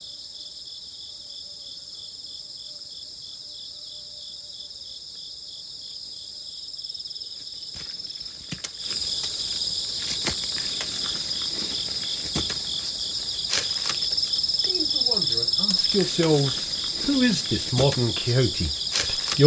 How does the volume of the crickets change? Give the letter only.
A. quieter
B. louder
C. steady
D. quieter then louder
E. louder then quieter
B.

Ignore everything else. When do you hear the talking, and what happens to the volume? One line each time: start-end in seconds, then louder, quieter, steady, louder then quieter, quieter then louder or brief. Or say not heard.
14.6-19.4 louder.